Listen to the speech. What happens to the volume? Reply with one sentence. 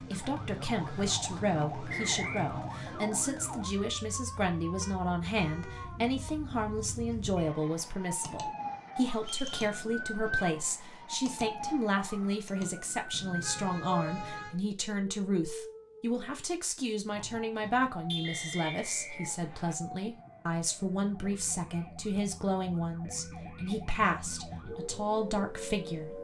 The loudness of the speech stays about the same.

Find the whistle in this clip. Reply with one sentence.
You can hear the whistle from 1.9 to 2.5 s, from 9.2 to 9.7 s and from 18.2 to 19.8 s.